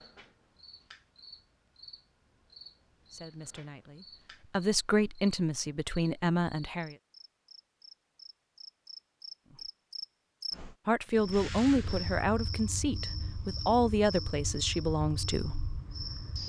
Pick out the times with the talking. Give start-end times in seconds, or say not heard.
3.1-7.0, 10.8-15.6.